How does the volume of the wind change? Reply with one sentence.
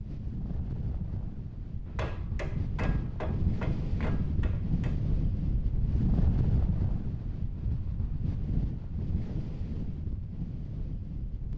The volume of the wind goes up, then down.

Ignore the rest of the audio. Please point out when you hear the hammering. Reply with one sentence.
The hammering can be heard from 1.9 to 5.0 s.